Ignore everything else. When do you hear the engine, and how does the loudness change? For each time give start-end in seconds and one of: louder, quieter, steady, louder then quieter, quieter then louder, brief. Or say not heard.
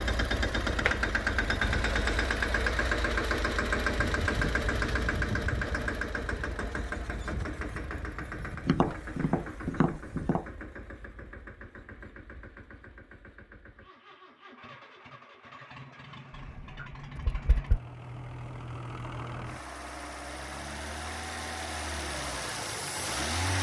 0.0-23.5 quieter then louder.